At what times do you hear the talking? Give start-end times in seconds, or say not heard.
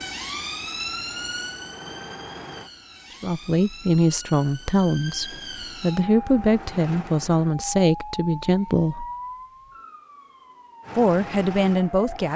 3.2-9.1, 10.9-12.3.